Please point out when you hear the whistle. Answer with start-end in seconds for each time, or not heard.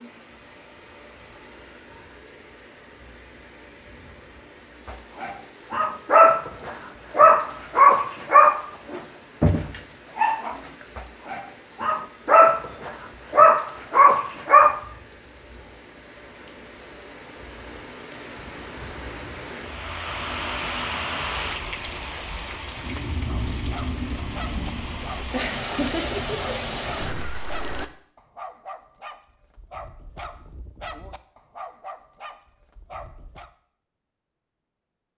not heard.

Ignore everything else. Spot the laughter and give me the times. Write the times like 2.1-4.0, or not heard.
25.3-26.4.